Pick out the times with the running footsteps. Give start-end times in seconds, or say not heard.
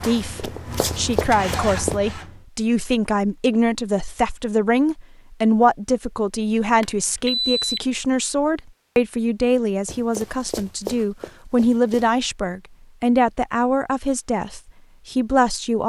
0.0-2.0, 9.8-12.1.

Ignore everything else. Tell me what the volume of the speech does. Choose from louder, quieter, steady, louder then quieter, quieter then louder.
steady.